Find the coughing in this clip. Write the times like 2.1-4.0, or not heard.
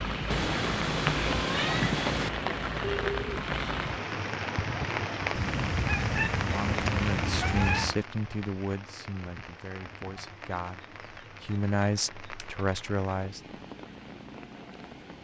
not heard.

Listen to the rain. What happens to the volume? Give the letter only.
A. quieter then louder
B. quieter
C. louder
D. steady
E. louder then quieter
B.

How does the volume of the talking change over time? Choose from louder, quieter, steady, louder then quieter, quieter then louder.
quieter then louder.